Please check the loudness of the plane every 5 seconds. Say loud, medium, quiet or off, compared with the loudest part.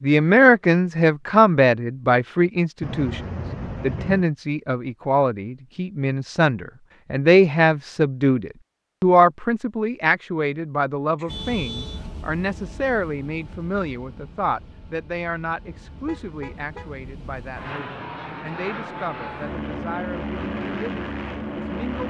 off, off, quiet, medium, loud.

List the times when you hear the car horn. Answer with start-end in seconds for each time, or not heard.
2.8-4.2, 11.2-12.1, 15.9-16.9.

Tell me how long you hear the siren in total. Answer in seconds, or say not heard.
not heard.